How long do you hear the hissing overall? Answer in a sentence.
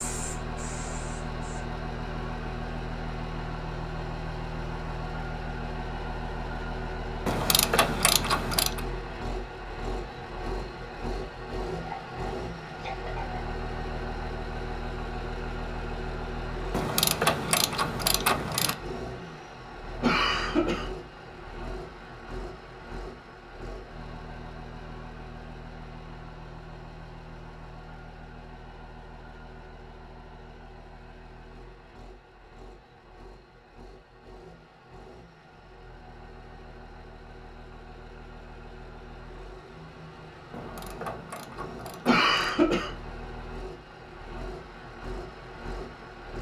The hissing can be heard for 2 seconds in total.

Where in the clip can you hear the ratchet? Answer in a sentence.
The ratchet can be heard from 7.2 to 8.8 s, from 16.7 to 18.8 s and from 40.5 to 42.5 s.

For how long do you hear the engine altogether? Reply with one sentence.
The engine can be heard for 46 seconds in total.